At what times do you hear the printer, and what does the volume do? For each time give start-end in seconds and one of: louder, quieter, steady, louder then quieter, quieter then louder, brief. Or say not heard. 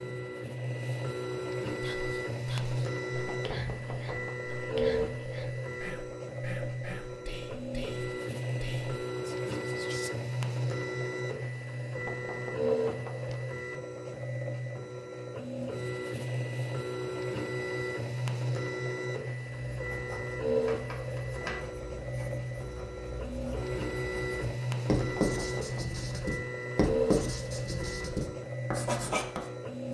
0.0-29.8 steady.